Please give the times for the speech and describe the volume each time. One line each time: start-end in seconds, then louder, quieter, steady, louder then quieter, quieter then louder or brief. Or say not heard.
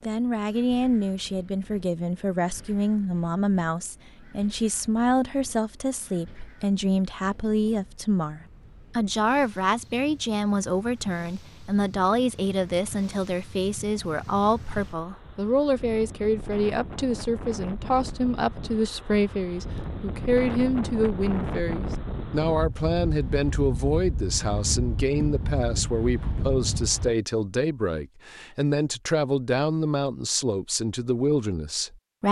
0.0-32.2 steady.